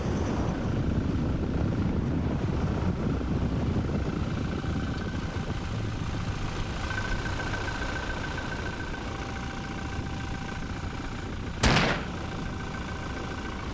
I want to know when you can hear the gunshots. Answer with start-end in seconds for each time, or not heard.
11.6-12.1.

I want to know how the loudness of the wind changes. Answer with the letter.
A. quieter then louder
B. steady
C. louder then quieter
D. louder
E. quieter
E.